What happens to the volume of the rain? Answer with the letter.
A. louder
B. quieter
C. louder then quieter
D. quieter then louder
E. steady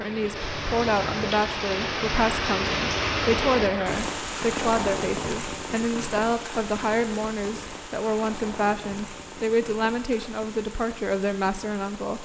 B.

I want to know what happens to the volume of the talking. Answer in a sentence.
The loudness of the talking stays about the same.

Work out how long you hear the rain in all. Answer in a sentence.
The rain can be heard for 12 seconds in total.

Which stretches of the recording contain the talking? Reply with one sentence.
You can hear the talking from 0.0 to 12.1 s.